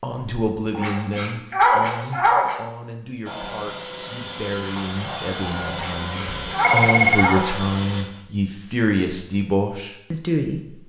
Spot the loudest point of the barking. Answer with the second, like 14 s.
2 s.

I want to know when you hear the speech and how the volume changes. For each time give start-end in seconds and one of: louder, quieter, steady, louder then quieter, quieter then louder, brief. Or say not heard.
0.0-10.8 quieter then louder.